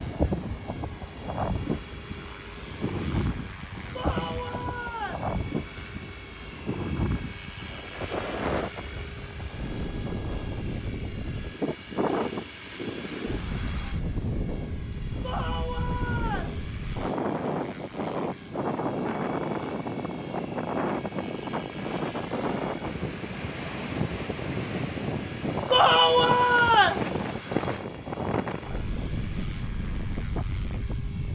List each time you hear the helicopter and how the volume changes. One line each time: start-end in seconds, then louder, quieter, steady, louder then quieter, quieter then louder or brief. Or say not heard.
0.0-31.2 steady.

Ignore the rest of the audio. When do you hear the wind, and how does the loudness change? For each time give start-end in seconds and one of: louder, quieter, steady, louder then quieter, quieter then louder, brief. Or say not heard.
0.0-31.2 steady.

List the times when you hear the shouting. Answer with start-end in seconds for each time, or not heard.
4.0-5.3, 15.2-16.6, 25.7-27.1.